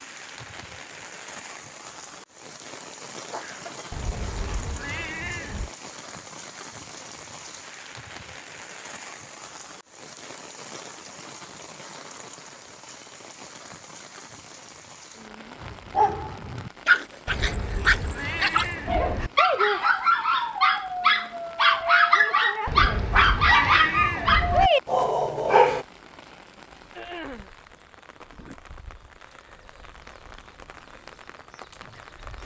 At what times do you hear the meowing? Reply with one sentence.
The meowing can be heard from 3.9 to 5.7 s, from 17.2 to 19.3 s and from 22.6 to 24.7 s.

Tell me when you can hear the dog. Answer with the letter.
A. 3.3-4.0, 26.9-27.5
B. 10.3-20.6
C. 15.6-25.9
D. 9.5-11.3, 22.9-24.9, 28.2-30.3
C.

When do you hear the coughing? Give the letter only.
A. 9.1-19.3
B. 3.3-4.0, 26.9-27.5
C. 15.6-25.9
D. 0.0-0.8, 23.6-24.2
B.